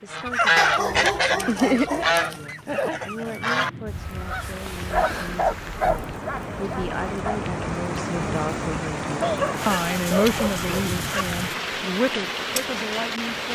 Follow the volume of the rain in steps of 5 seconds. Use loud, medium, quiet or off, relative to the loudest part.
quiet, loud, loud.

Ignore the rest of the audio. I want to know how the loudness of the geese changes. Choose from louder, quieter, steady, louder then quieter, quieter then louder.
quieter.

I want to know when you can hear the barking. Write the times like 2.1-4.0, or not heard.
0.6-2.1, 4.9-7.4, 9.2-11.2.